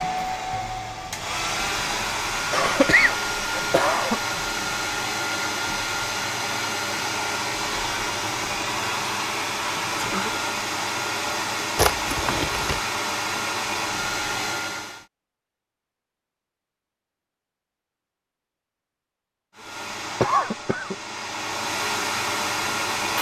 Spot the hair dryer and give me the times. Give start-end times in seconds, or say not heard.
0.0-15.1, 19.6-23.1.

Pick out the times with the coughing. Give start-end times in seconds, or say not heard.
2.5-4.2, 11.8-12.8, 20.2-20.9.